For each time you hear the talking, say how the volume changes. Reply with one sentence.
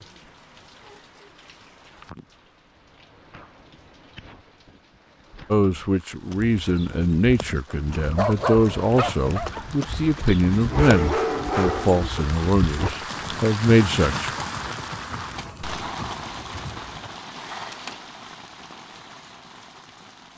The talking can be heard from 5.5 to 14.3 s, at a steady volume.